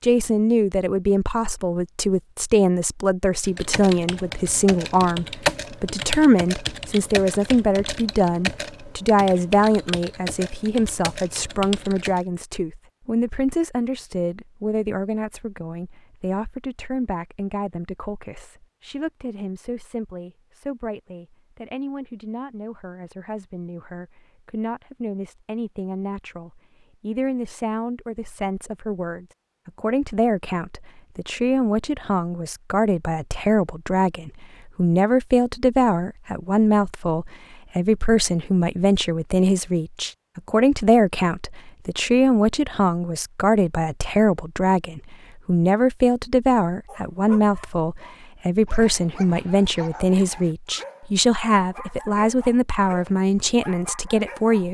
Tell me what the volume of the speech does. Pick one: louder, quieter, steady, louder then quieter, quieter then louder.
quieter then louder.